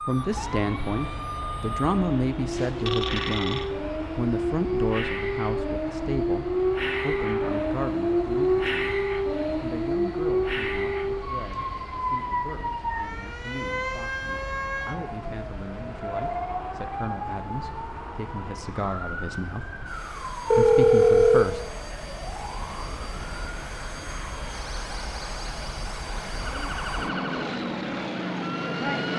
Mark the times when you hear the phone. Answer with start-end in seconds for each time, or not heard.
2.5-3.6, 20.5-21.6.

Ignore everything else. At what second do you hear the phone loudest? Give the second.
21 s.